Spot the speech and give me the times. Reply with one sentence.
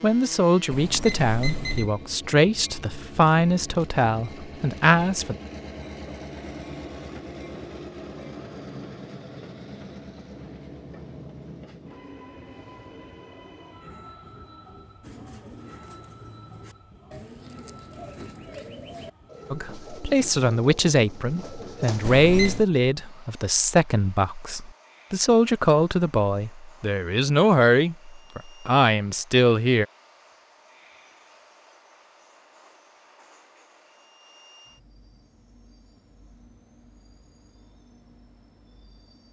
You can hear the speech from 0.0 to 5.3 s and from 19.5 to 29.9 s.